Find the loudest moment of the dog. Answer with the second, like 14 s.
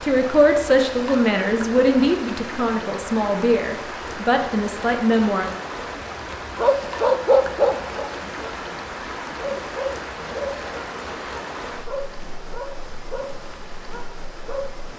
7 s.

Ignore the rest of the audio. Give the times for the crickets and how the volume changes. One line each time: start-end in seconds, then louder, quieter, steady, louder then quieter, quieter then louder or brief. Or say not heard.
not heard.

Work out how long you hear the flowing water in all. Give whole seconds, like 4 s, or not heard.
15 s.